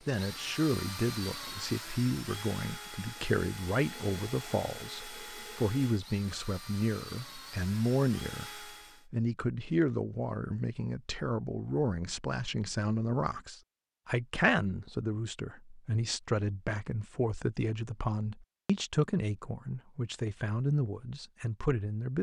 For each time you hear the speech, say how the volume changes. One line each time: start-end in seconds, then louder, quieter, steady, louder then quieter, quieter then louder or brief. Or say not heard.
0.1-22.1 steady.